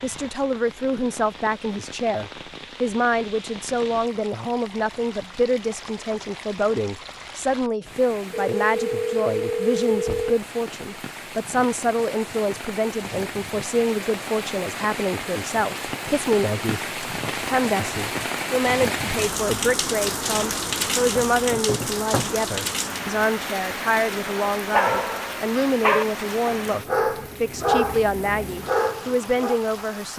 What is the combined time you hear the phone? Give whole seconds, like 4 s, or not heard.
2 s.